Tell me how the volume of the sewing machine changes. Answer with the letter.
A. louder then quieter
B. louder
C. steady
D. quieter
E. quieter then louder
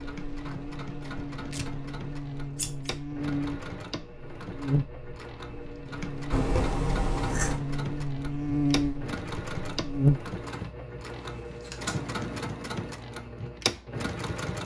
B.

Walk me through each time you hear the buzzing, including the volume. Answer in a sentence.
The buzzing can be heard from 0.0 to 10.3 s, getting louder.